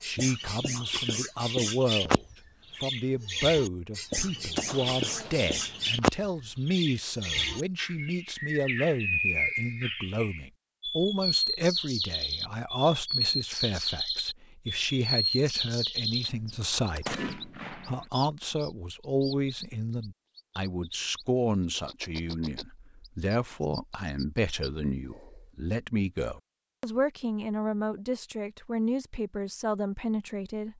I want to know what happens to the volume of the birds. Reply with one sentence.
The loudness of the birds goes down.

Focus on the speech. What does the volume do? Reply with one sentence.
The volume of the speech stays about the same.